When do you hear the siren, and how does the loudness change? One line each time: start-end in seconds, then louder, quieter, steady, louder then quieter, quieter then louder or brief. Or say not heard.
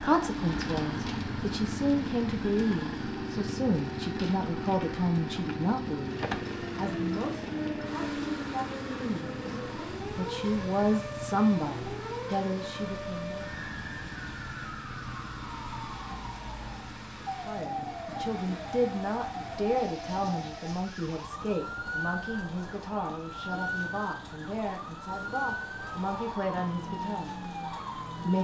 3.0-28.3 steady.